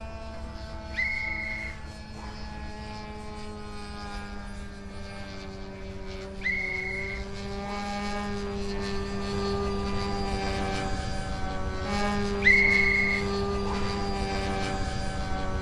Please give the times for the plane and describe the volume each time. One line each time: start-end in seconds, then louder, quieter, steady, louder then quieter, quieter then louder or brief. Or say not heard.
0.0-15.5 louder.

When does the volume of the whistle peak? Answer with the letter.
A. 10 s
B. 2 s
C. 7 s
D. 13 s
D.